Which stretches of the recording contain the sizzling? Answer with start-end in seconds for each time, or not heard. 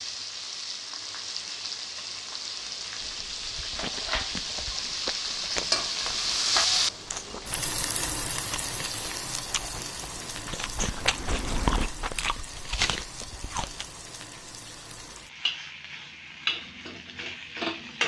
0.0-18.0.